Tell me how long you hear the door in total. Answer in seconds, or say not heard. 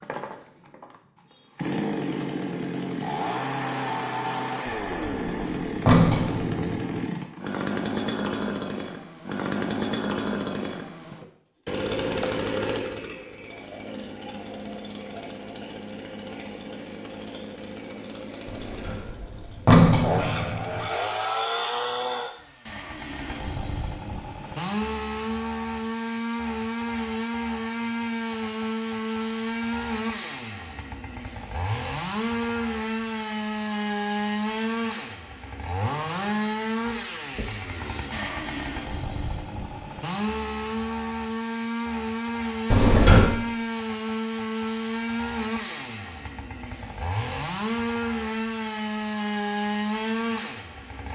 5 s.